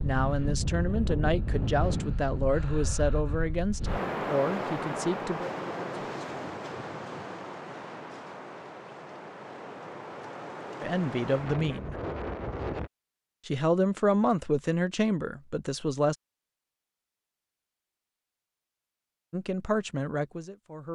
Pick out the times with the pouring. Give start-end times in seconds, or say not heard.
not heard.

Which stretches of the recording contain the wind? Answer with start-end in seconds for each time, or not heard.
0.0-12.9.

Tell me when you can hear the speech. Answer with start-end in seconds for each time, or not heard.
0.0-6.5, 10.8-11.9, 13.4-16.1, 19.3-20.8.